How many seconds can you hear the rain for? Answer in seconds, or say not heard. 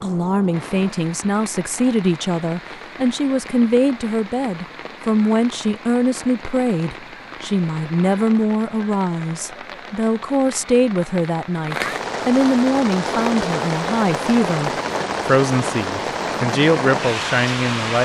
18 s.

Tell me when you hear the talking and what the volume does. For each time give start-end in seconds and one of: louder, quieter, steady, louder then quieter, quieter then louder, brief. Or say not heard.
0.0-18.0 steady.